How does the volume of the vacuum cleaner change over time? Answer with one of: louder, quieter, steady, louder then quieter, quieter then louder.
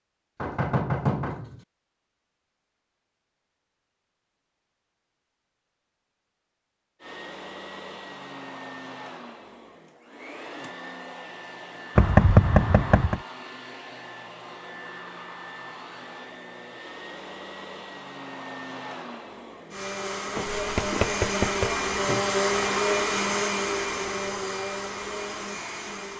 louder.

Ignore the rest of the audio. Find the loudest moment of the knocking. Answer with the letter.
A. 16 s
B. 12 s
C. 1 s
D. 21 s
B.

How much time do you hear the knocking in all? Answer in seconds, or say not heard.
4 s.